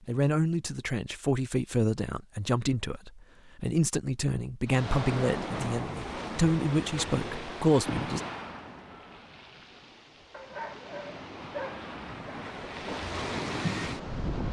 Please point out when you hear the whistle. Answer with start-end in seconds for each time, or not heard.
not heard.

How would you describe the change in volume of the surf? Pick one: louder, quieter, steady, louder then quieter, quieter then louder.
quieter then louder.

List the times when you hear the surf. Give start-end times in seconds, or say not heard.
4.7-14.4.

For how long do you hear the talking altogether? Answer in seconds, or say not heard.
8 s.